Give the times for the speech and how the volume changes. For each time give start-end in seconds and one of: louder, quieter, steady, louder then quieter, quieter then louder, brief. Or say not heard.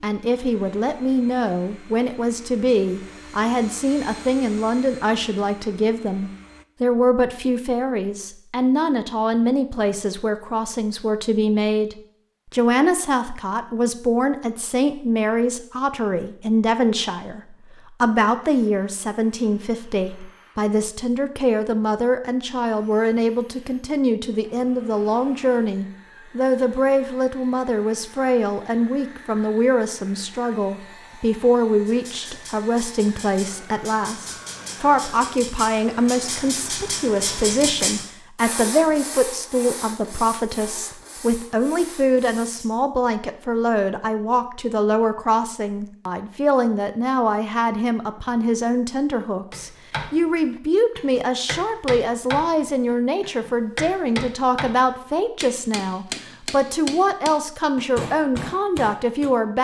0.0-59.5 steady.